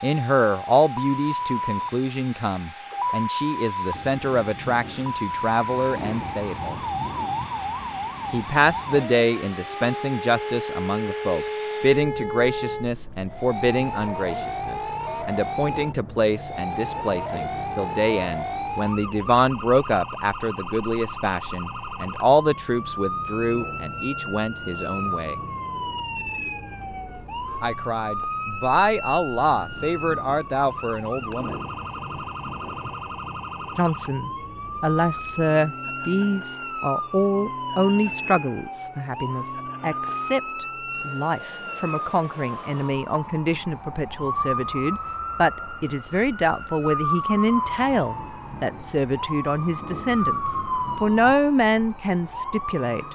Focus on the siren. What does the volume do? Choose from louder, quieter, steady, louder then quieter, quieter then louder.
steady.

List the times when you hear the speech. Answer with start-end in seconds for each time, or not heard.
0.0-6.8, 8.3-25.4, 27.6-31.6, 33.8-53.0.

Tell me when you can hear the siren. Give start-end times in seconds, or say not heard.
0.0-53.1.